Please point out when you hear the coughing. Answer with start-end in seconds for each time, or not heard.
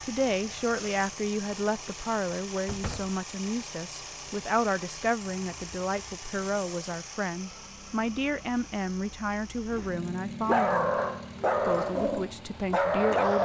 not heard.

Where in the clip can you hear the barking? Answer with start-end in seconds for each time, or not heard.
9.7-13.3.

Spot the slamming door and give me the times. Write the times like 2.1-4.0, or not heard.
2.6-3.2.